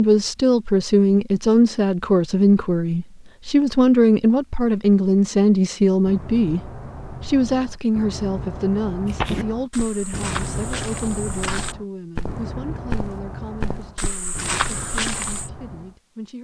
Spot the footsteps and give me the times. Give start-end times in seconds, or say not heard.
9.1-15.5.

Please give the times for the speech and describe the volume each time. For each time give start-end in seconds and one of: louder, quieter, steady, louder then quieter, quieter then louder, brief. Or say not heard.
0.0-16.3 quieter.